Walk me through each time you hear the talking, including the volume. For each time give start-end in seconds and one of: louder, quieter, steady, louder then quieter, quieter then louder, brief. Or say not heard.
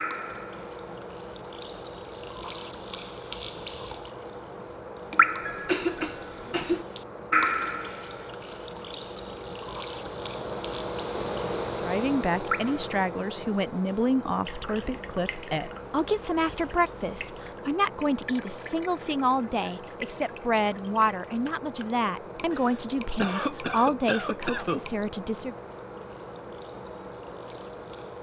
11.8-25.6 steady.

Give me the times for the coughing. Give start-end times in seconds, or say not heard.
5.5-6.8, 22.5-24.9.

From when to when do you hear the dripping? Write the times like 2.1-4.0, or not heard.
0.0-4.1, 5.1-11.6, 12.4-12.9, 13.8-28.1.